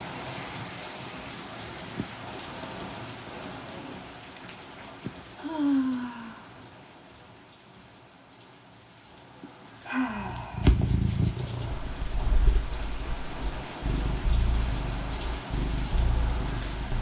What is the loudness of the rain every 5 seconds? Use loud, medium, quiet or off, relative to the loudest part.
loud, medium, loud, loud.